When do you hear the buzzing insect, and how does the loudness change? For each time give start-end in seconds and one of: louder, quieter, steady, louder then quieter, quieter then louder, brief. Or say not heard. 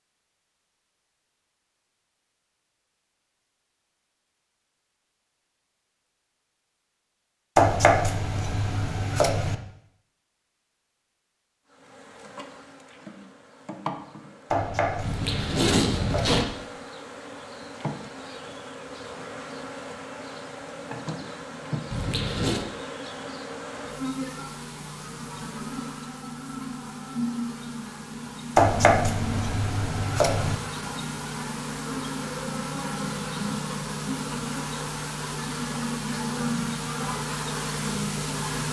11.7-38.6 louder.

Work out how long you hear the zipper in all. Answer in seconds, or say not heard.
2 s.